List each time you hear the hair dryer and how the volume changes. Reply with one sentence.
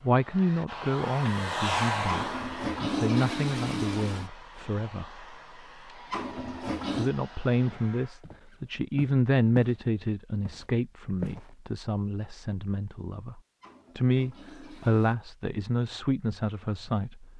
You can hear the hair dryer from 0.0 to 8.2 s, getting quieter.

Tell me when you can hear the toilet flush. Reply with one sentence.
You can hear the toilet flush from 2.0 to 4.3 s, from 6.1 to 7.2 s and from 13.6 to 15.2 s.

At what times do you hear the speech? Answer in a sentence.
The speech can be heard from 0.0 to 5.2 s and from 7.0 to 17.3 s.